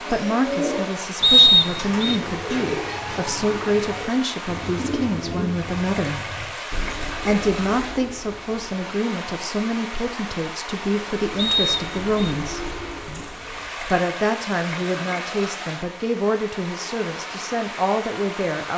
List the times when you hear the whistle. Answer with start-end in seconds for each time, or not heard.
1.2-2.2, 11.3-12.3.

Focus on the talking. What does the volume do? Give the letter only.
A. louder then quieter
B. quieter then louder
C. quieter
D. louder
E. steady
E.